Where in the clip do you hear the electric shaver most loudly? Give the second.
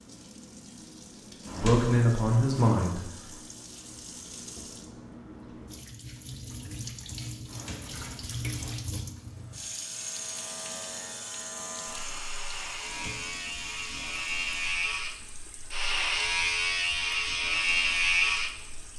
18 s.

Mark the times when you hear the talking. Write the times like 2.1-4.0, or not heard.
1.6-3.0.